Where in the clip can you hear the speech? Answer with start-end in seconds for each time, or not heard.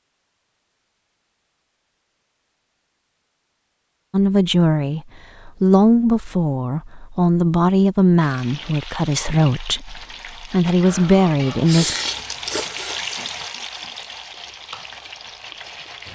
4.1-11.9.